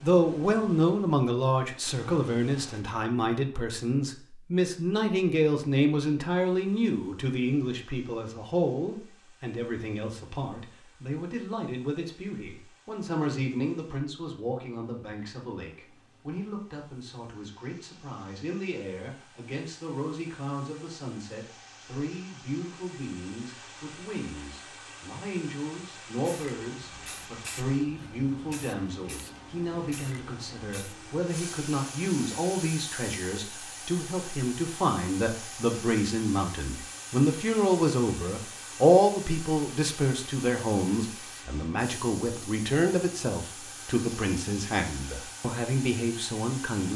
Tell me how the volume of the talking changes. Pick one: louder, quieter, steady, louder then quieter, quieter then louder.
quieter then louder.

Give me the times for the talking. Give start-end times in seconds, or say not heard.
0.0-46.9.